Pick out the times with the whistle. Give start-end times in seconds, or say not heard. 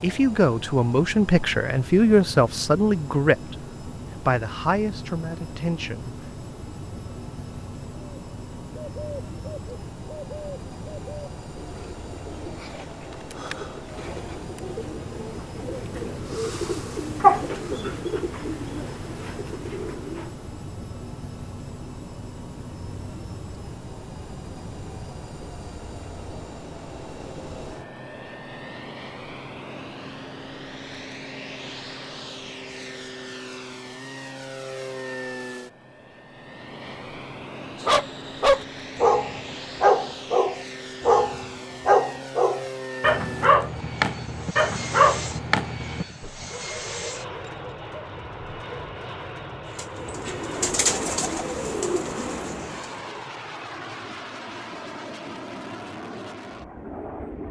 not heard.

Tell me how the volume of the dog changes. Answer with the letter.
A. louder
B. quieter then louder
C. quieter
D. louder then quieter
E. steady
C.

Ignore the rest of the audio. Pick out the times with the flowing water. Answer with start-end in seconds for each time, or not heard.
not heard.